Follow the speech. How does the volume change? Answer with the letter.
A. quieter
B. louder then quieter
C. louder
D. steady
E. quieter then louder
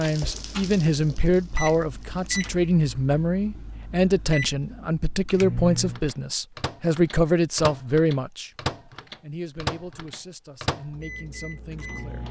A.